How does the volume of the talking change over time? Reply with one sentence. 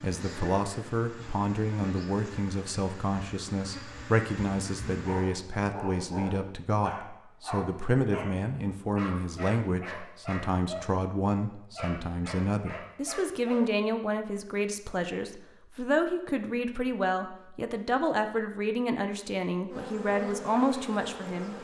The loudness of the talking stays about the same.